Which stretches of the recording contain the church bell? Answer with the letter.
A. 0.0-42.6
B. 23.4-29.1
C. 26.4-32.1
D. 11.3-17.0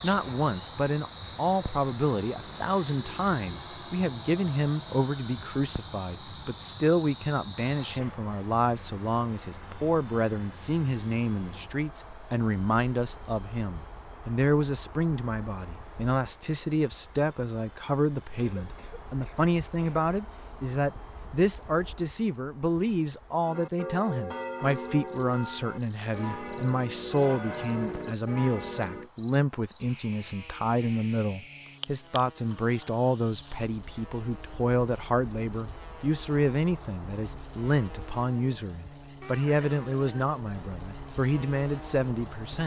B.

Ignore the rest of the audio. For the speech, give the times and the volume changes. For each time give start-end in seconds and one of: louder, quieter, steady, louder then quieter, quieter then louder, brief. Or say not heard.
0.0-42.6 steady.